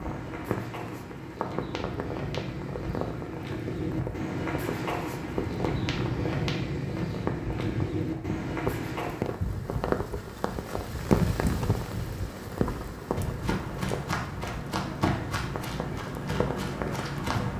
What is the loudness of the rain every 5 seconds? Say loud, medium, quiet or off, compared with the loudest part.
medium, loud, loud, medium.